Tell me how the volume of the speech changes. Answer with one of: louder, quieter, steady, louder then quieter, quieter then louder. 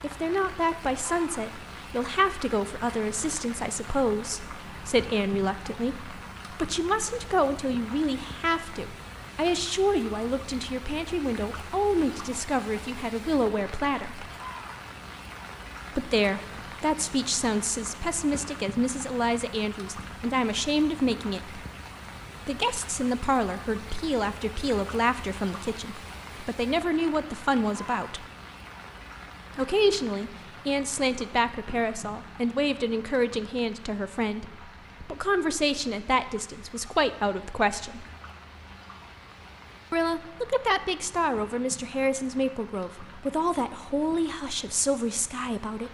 steady.